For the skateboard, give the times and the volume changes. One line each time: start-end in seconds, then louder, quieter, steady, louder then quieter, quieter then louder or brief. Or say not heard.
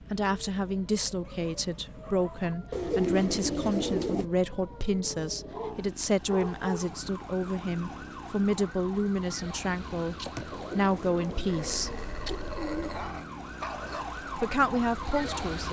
not heard.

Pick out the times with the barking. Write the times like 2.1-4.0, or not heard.
1.2-2.5, 5.5-7.0, 11.4-14.1.